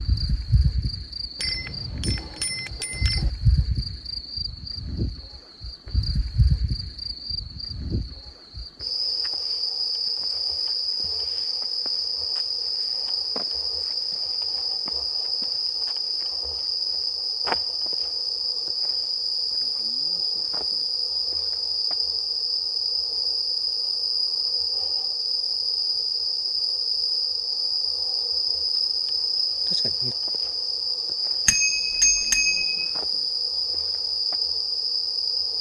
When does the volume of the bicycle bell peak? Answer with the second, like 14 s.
32 s.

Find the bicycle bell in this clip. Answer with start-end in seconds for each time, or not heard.
1.4-3.3, 31.4-32.9.